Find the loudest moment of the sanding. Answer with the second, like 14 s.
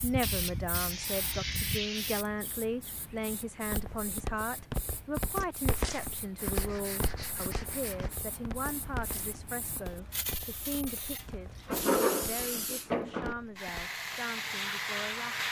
12 s.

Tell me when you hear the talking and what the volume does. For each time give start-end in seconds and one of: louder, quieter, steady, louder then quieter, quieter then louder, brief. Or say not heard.
0.0-15.4 quieter.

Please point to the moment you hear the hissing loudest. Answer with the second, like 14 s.
15 s.